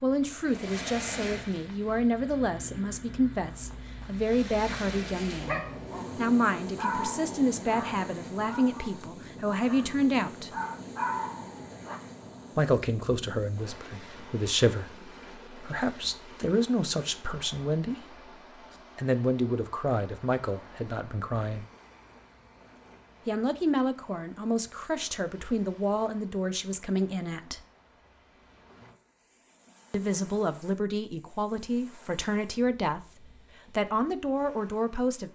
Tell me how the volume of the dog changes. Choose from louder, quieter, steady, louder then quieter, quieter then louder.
quieter then louder.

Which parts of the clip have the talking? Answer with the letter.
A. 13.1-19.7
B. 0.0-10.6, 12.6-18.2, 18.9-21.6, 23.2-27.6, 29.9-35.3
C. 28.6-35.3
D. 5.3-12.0
B.